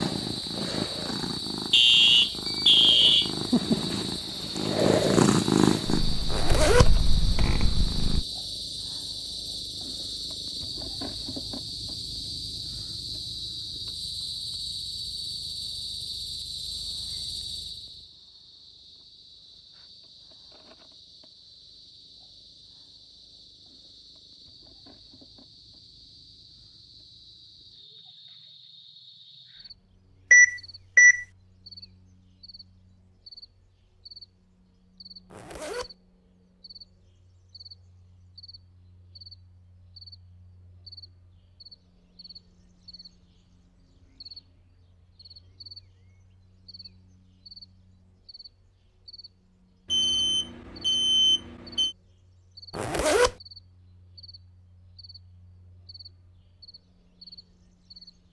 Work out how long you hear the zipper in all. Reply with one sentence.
The zipper can be heard for 2 seconds in total.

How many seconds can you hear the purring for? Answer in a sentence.
You can hear the purring for 8 seconds altogether.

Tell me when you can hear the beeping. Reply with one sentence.
The beeping can be heard from 1.7 to 3.3 s, from 30.3 to 31.2 s and from 49.9 to 52.0 s.